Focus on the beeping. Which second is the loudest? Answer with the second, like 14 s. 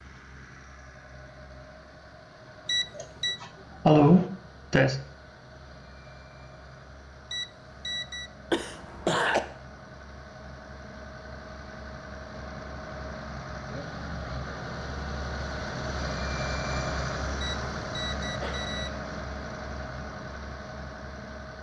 3 s.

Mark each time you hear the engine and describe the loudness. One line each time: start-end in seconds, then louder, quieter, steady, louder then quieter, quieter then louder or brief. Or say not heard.
0.0-21.5 louder.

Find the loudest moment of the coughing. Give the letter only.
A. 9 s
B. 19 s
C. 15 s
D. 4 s
D.